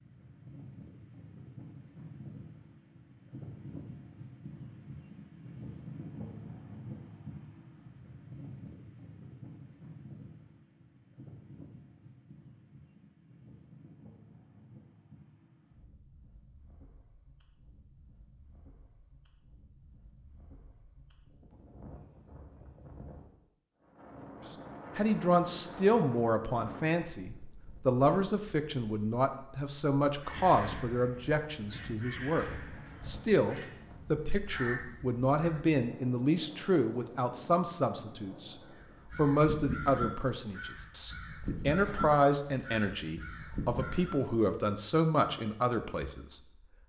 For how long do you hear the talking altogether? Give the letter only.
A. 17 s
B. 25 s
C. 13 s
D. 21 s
D.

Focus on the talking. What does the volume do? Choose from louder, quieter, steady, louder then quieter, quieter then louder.
steady.